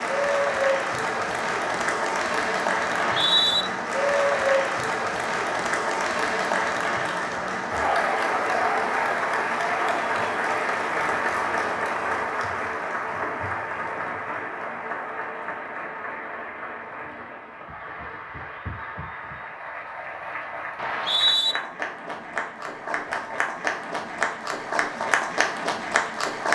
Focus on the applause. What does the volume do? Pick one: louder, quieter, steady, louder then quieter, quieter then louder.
quieter then louder.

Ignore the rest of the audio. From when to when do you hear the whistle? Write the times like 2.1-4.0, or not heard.
2.9-3.6, 20.8-21.6.